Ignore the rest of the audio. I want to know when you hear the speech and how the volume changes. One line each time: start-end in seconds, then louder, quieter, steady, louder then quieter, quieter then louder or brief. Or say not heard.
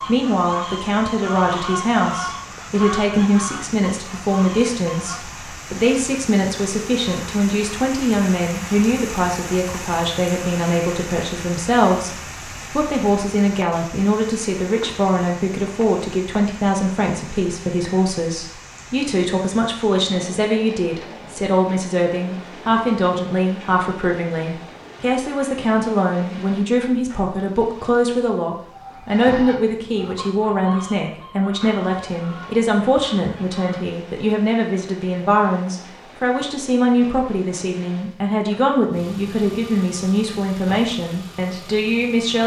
0.0-42.4 steady.